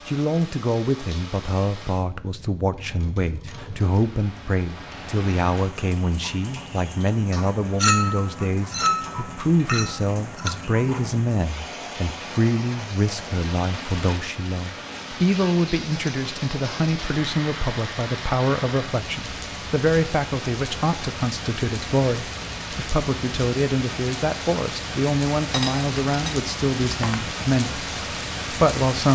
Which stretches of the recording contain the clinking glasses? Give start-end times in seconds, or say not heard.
7.8-10.6, 25.5-27.3.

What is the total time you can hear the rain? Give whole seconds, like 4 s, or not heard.
29 s.